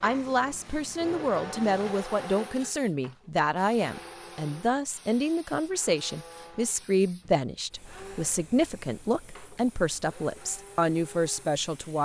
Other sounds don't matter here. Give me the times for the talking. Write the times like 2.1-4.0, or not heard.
0.0-12.0.